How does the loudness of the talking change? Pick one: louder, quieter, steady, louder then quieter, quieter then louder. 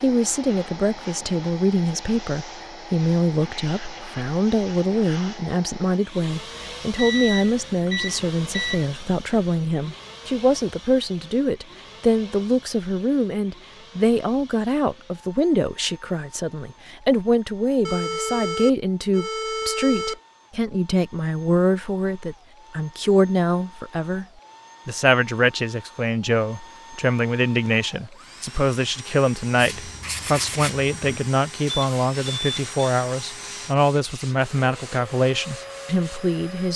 steady.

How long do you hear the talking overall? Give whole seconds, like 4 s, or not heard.
36 s.